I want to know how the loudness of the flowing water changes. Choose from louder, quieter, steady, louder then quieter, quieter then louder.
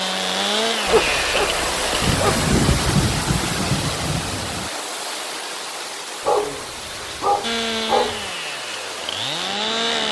quieter.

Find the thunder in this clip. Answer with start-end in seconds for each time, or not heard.
2.0-4.7.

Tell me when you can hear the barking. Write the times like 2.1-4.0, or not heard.
0.8-2.5, 6.2-8.3.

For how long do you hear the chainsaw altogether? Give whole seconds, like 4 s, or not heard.
5 s.